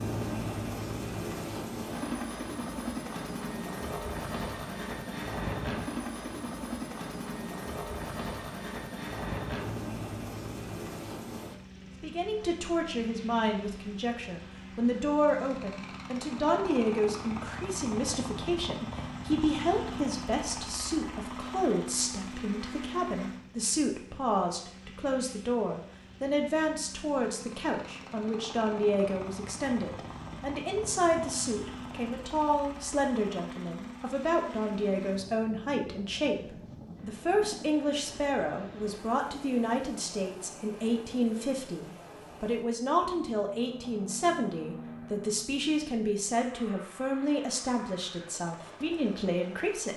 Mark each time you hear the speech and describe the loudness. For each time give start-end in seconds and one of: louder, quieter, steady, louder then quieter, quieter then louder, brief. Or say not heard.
12.0-49.9 steady.